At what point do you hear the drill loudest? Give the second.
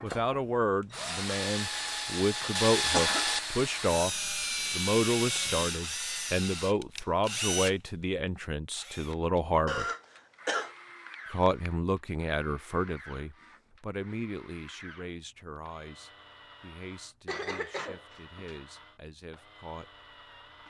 3 s.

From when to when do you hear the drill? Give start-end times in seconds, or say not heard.
0.0-7.8, 8.7-20.6.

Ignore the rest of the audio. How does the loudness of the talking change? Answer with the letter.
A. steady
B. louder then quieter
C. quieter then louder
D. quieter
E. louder
D.